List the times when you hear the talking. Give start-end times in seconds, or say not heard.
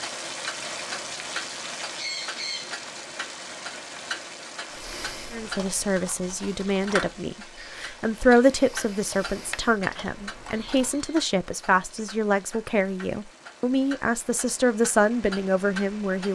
5.3-16.3.